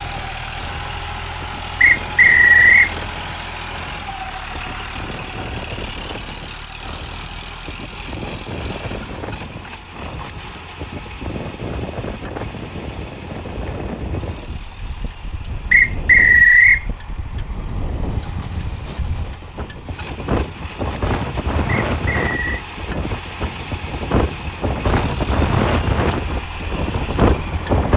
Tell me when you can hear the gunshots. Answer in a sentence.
The gunshots can't be heard in this clip.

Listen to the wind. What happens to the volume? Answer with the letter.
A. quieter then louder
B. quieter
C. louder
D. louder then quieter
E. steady
C.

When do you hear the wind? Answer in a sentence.
The wind can be heard from 0.0 to 27.9 s.